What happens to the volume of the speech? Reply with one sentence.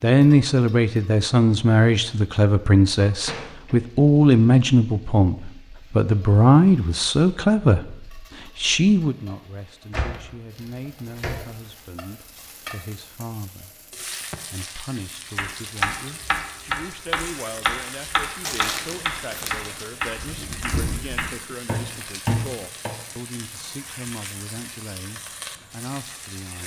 The loudness of the speech goes down.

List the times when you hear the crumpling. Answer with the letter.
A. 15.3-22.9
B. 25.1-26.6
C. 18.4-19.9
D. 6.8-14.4
C.